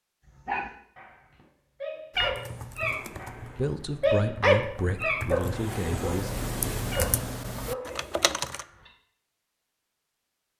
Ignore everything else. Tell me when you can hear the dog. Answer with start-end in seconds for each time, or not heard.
0.2-8.9.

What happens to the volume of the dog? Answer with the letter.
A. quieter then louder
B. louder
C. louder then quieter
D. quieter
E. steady
C.